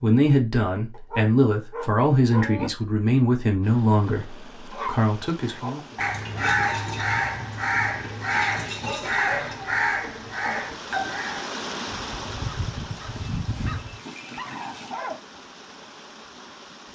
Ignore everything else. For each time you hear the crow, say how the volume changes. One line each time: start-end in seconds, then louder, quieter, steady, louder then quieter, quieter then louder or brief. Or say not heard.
5.4-14.0 quieter.